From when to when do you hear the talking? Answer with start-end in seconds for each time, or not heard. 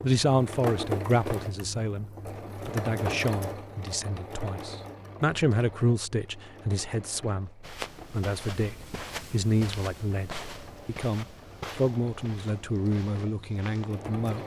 0.0-2.0, 2.6-14.4.